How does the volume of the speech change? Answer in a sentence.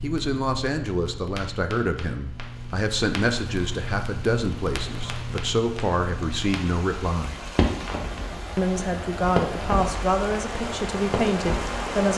The loudness of the speech stays about the same.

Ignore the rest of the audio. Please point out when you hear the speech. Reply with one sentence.
The speech can be heard from 0.0 to 7.3 s and from 8.6 to 12.1 s.